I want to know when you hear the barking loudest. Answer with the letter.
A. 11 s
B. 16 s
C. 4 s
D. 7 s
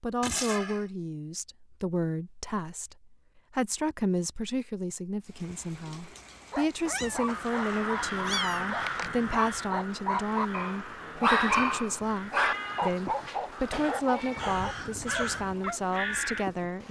A.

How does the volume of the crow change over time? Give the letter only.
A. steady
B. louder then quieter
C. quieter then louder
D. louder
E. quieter
C.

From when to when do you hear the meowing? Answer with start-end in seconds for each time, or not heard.
0.2-0.8, 6.8-9.1, 12.3-14.6.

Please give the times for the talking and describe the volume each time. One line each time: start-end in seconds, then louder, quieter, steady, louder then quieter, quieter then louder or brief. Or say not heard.
0.0-16.8 steady.